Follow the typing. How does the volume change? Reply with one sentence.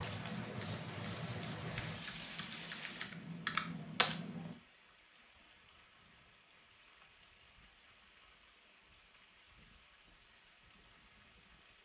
The volume of the typing goes up.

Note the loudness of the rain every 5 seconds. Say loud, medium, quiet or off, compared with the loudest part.
loud, quiet, quiet.